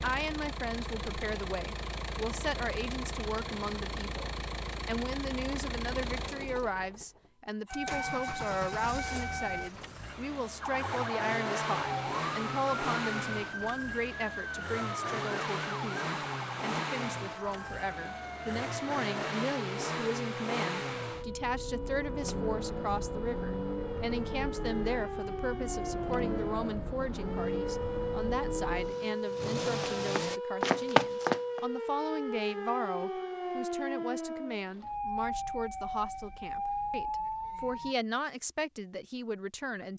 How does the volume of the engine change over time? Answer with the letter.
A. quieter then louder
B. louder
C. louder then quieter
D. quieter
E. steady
E.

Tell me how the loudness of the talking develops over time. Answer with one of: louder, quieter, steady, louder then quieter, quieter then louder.
steady.